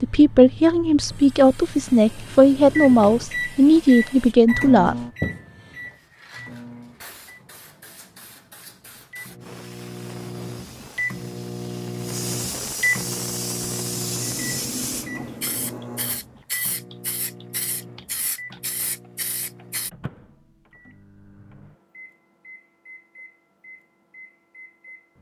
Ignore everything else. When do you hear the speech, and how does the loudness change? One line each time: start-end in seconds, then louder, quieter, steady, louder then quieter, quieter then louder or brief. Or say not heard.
0.0-5.0 steady.